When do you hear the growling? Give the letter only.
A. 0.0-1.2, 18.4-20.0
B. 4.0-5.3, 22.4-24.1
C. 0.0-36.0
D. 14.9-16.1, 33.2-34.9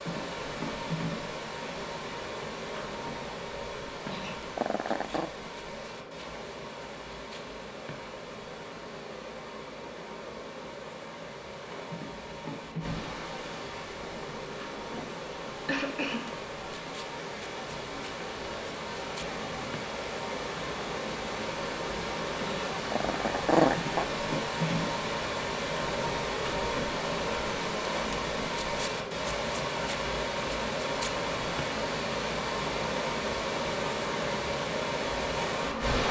B.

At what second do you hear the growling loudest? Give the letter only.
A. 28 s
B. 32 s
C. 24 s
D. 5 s
C.